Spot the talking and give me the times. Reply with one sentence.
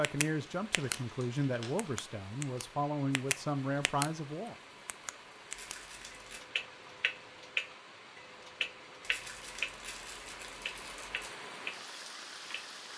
The talking can be heard from 0.0 to 4.5 s.